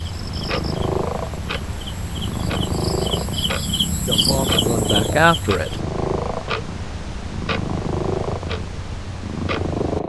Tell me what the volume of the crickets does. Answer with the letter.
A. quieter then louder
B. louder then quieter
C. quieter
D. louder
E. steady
D.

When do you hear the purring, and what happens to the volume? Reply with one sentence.
The purring can be heard from 0.1 to 10.0 s, at a steady volume.